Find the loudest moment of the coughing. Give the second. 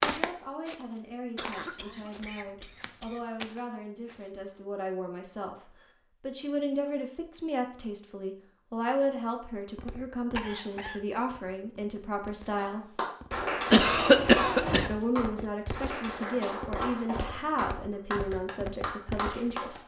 14 s.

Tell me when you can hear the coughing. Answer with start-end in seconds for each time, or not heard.
1.4-3.2, 10.3-11.0, 13.7-14.9.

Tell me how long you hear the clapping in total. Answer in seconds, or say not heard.
7 s.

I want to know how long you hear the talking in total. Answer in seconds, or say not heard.
18 s.